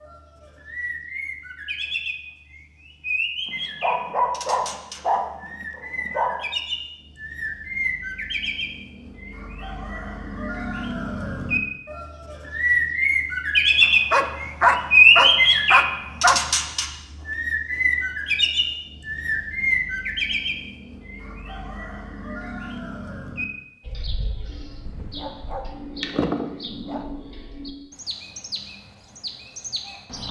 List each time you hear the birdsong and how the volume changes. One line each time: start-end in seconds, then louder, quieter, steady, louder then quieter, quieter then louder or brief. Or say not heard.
0.0-30.2 louder then quieter.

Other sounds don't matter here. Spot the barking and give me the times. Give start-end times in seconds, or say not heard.
3.5-6.3, 13.8-16.4, 24.9-27.1.